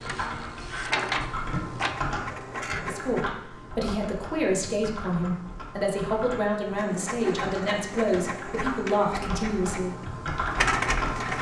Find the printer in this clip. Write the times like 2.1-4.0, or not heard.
0.0-3.2, 6.8-11.3.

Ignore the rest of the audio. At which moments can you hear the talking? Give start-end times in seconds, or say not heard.
2.7-9.9.